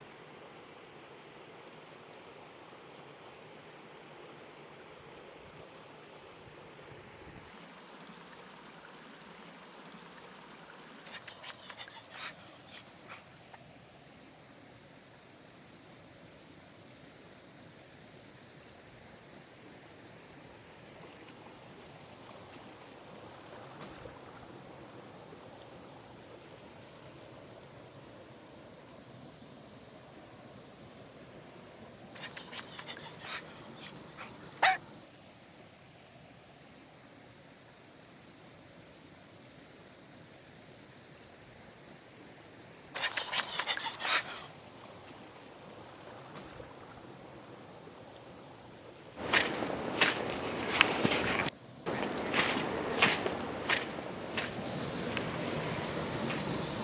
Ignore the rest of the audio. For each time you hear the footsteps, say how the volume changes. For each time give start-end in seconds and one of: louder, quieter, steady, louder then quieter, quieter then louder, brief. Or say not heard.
49.1-56.5 quieter.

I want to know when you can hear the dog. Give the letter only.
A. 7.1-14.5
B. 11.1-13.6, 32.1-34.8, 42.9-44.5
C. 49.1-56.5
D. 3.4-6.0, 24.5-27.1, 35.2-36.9
B.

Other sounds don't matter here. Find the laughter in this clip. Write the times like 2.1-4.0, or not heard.
not heard.